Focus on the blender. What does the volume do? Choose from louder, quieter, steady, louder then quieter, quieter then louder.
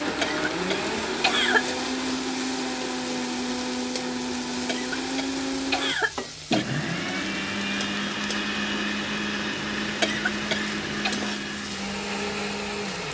steady.